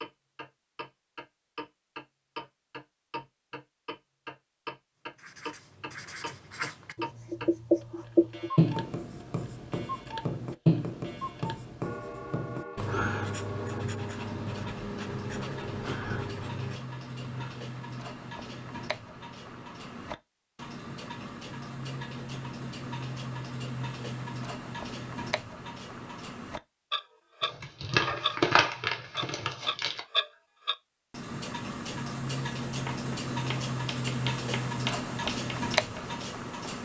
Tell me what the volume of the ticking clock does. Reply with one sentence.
The loudness of the ticking clock goes up.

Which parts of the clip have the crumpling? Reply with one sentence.
The crumpling can be heard from 27.4 to 30.0 s.